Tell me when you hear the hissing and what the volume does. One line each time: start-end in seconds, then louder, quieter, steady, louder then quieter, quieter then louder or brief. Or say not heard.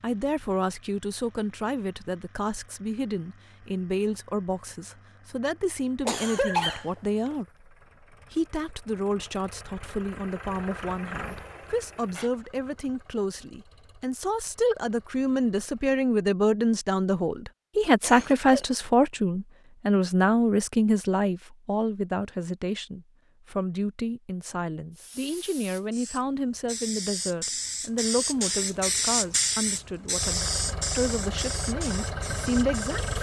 24.9-33.1 louder then quieter.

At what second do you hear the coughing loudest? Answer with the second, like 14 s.
7 s.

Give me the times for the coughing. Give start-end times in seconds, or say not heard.
6.0-7.3, 18.0-18.6.